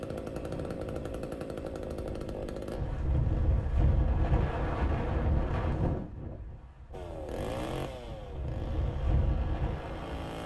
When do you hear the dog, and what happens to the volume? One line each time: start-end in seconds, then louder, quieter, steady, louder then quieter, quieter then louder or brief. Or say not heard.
not heard.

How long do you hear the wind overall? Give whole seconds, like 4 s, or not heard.
10 s.